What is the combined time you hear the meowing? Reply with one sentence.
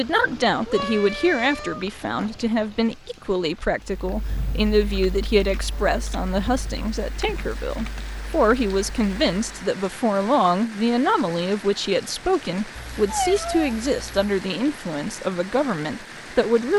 The meowing can be heard for 3 seconds in total.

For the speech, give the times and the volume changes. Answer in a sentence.
The speech can be heard from 0.0 to 16.7 s, at a steady volume.